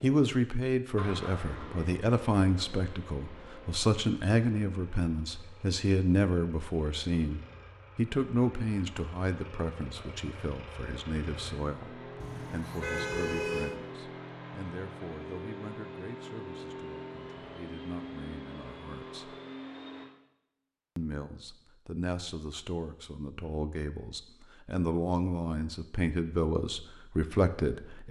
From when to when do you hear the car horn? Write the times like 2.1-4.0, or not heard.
12.2-13.8.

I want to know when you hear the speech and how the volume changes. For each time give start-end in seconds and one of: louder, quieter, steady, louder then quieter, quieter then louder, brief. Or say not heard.
0.0-19.4 quieter
20.9-28.0 louder.